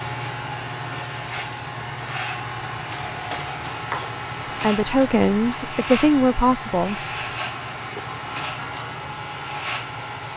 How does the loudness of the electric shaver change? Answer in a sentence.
The volume of the electric shaver stays about the same.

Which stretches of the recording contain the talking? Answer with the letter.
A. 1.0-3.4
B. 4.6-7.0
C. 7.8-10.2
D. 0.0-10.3
B.